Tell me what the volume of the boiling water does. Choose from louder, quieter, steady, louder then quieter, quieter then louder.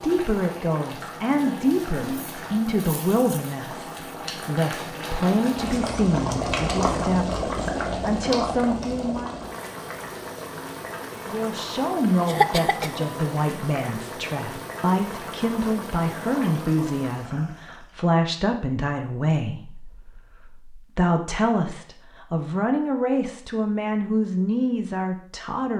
louder then quieter.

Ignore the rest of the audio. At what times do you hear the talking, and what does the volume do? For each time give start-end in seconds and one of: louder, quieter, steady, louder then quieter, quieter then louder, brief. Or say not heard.
0.0-9.4 steady
11.2-25.7 steady.